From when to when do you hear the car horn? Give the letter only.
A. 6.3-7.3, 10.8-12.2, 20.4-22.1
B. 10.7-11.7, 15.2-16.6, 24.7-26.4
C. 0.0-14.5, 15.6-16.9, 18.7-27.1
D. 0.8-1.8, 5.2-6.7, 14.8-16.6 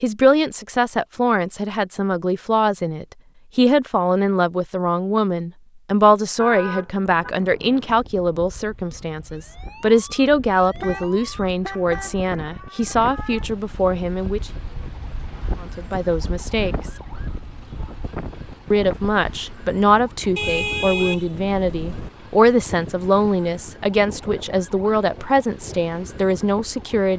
A.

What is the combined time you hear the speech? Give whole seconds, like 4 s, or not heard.
24 s.